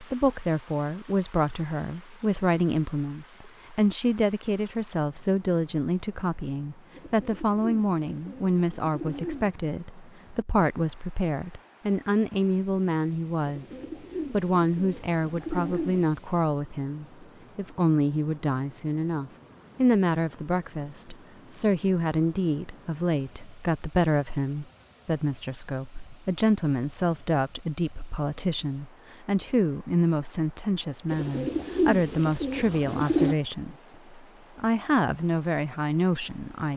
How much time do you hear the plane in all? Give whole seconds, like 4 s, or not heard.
not heard.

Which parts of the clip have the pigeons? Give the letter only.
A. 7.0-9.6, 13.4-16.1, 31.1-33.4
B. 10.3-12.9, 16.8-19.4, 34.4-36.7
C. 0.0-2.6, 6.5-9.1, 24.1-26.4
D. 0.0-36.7
A.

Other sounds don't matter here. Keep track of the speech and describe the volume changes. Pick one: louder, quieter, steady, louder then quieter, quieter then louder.
steady.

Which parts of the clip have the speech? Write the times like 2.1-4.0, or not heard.
0.0-36.7.